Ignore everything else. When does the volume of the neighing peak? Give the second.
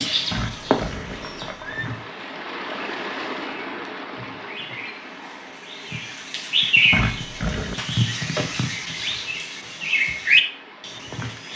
7 s.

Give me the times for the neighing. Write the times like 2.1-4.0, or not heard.
0.3-1.9, 6.9-7.8.